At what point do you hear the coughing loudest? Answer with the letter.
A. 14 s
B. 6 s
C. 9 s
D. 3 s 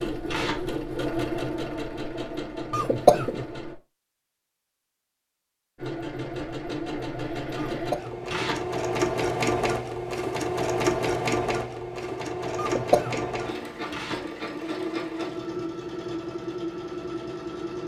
D.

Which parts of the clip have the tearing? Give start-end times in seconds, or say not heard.
0.2-0.7, 8.2-8.7, 13.9-14.3.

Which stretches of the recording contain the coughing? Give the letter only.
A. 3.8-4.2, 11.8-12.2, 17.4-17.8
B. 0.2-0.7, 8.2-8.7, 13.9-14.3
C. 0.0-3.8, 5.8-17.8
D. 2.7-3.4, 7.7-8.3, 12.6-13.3
D.